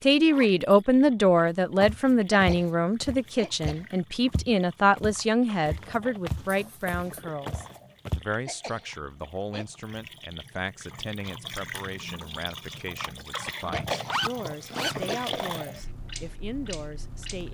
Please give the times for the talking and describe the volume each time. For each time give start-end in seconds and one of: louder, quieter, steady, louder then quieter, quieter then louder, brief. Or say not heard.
0.0-17.4 quieter.